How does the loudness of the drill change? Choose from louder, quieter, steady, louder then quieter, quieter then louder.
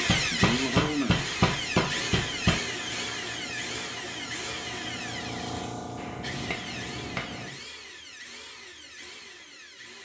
quieter.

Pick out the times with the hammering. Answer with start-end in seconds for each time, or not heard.
0.1-2.6, 6.0-7.6.